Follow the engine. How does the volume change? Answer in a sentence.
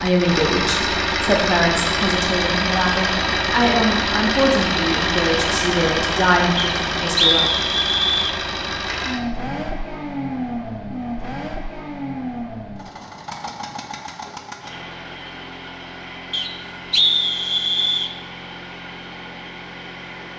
The loudness of the engine goes down.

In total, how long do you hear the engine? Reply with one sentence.
You can hear the engine for 20 seconds altogether.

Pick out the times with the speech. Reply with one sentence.
The speech can be heard from 0.0 to 7.5 s.